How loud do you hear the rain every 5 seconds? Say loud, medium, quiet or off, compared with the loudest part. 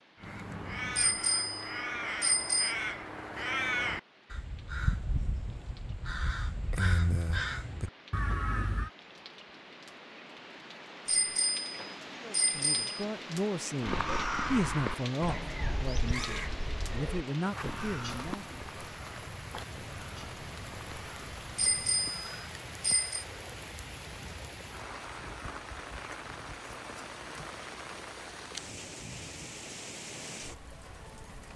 quiet, medium, loud, loud, loud, loud, loud.